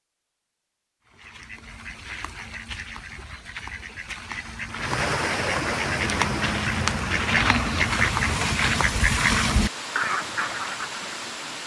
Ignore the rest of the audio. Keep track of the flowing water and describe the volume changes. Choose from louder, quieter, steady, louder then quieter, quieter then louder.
quieter.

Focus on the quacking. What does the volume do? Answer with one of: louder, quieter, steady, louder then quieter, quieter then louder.
louder.